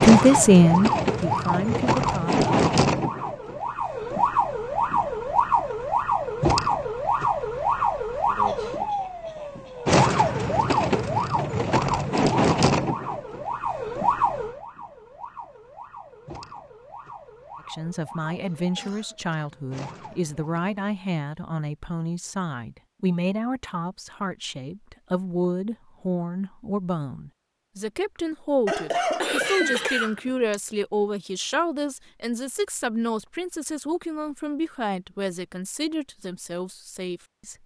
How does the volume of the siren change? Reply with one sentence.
The volume of the siren goes down.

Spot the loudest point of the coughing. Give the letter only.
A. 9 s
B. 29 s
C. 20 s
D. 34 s
B.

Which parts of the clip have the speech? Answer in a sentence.
You can hear the speech from 0.0 to 2.5 s and from 17.6 to 37.5 s.